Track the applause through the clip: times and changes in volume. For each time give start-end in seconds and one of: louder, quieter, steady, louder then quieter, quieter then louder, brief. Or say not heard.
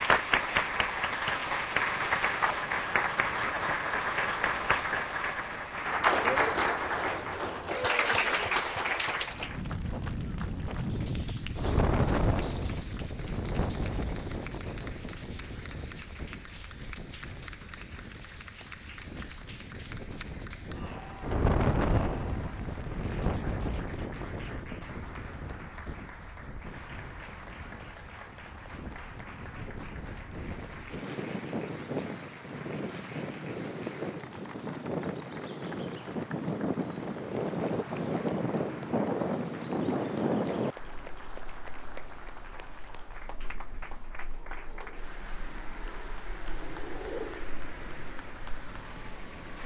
0.0-49.6 quieter.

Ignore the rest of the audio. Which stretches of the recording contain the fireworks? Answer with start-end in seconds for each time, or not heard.
not heard.